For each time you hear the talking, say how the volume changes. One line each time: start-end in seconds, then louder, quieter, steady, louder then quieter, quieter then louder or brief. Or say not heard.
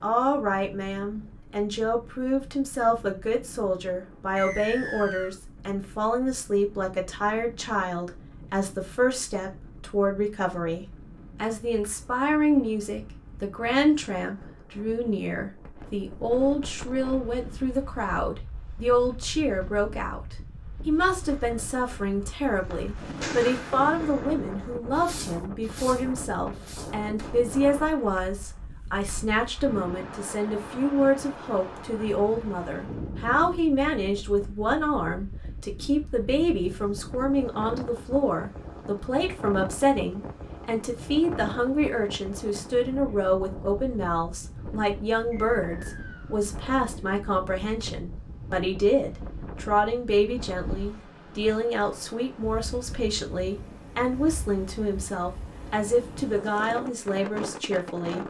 0.0-58.2 steady.